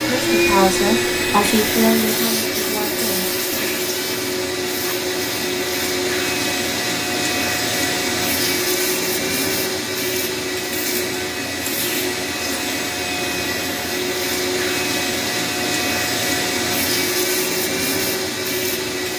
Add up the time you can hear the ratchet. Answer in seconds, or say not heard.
not heard.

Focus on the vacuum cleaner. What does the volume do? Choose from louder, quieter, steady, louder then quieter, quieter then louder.
steady.